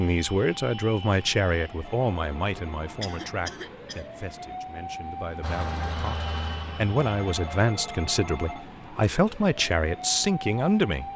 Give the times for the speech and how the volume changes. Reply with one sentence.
You can hear the speech from 0.0 to 11.1 s, getting quieter then louder.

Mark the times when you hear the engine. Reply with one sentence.
You can hear the engine from 5.4 to 7.7 s.